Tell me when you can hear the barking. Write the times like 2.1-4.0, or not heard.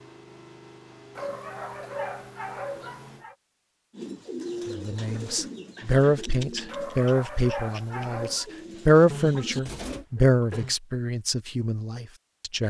1.1-3.4, 6.7-8.4.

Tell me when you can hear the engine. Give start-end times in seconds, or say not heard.
0.0-3.2.